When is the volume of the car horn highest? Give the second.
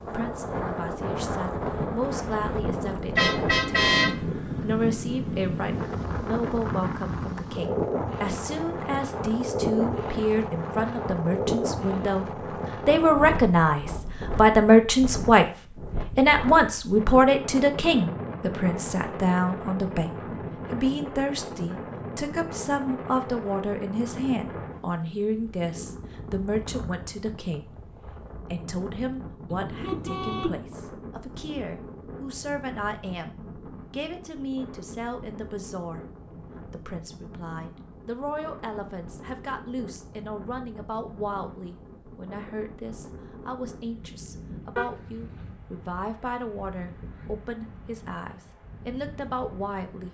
4 s.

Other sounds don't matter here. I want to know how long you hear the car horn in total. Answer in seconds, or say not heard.
3 s.